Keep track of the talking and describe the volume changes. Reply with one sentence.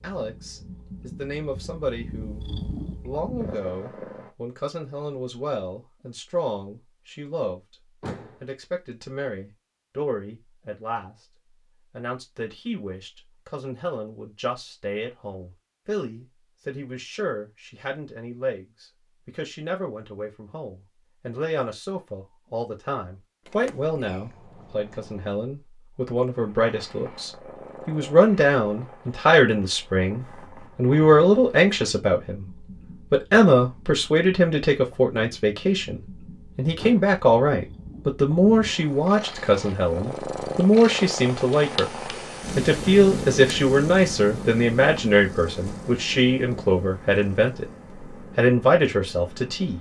The volume of the talking goes up.